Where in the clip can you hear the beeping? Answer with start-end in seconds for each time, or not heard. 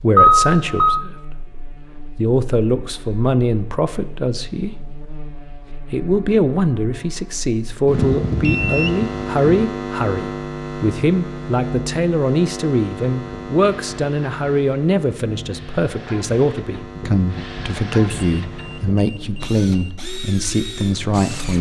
0.1-1.0, 7.8-9.7, 18.1-19.9.